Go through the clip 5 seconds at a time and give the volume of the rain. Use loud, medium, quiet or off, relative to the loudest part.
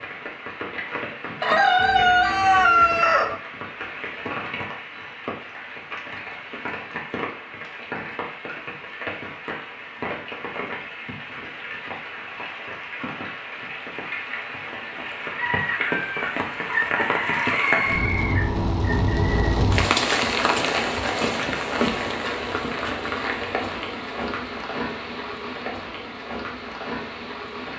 medium, medium, medium, loud, loud, medium.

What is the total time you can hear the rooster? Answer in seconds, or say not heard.
6 s.